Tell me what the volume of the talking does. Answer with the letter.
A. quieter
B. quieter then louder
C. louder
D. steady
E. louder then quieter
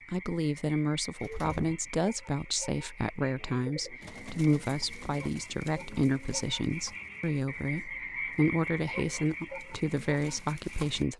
D.